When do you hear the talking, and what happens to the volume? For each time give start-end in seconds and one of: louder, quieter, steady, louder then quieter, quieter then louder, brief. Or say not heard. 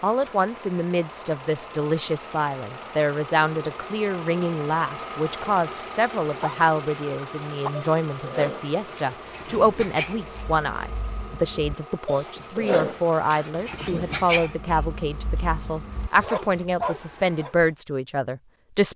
0.0-18.9 steady.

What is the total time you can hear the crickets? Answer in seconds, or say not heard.
not heard.